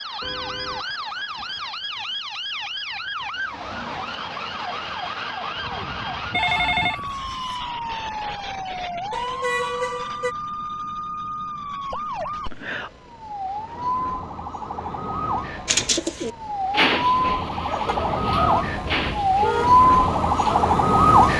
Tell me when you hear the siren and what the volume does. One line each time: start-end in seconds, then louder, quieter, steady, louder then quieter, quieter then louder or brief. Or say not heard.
0.0-21.3 louder.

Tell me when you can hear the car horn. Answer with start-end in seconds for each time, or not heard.
0.2-0.8, 9.1-10.3, 17.9-19.9.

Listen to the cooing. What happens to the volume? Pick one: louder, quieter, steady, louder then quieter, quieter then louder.
quieter.